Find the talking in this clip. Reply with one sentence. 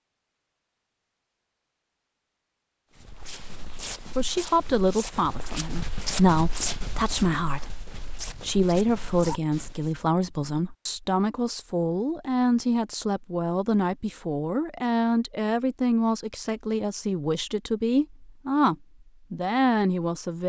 You can hear the talking from 4.2 to 20.4 s.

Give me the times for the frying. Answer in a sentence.
You can't hear the frying here.